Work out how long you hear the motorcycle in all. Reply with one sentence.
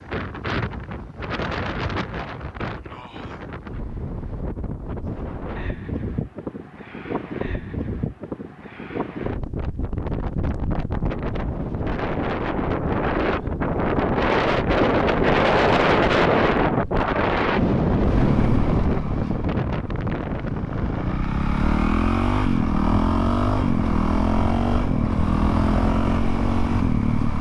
The motorcycle can be heard for 9 seconds in total.